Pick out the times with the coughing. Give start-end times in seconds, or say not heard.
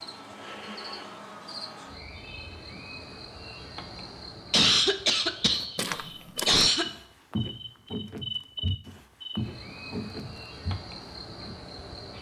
4.5-6.8.